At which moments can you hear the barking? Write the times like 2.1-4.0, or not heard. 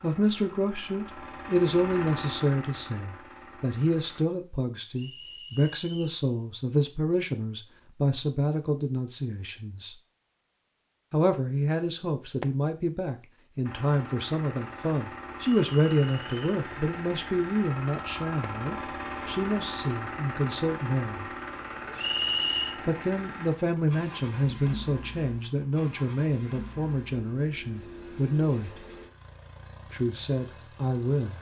not heard.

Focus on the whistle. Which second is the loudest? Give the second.
22 s.